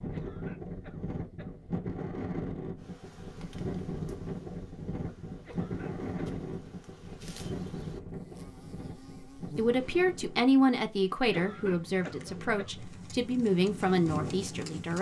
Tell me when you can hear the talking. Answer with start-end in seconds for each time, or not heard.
9.6-14.9.